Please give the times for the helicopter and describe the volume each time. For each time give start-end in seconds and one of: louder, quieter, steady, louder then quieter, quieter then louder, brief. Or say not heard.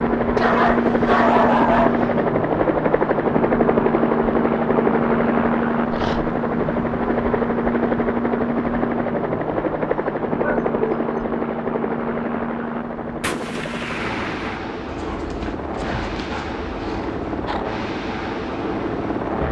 0.0-19.4 quieter.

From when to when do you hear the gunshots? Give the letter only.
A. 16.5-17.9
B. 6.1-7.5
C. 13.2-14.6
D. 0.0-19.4
C.